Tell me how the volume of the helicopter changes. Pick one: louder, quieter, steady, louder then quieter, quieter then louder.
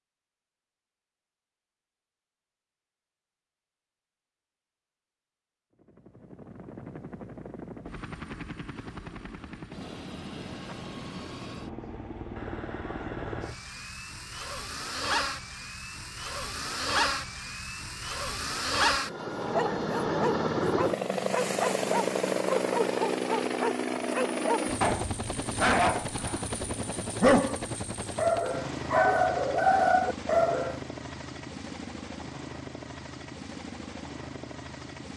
louder then quieter.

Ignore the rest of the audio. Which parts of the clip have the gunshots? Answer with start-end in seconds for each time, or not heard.
not heard.